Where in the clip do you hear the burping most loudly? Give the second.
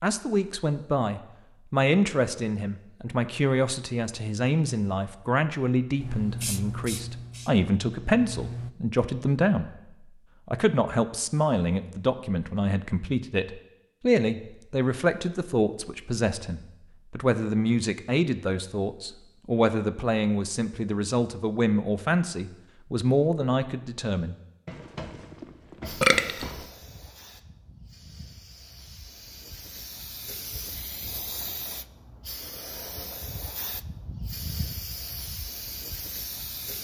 26 s.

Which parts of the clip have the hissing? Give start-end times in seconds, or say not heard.
6.0-8.7, 25.8-36.7.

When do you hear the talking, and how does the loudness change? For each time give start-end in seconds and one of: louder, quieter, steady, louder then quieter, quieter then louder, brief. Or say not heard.
0.0-24.4 steady.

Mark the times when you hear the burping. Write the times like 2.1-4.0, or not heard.
24.6-26.6.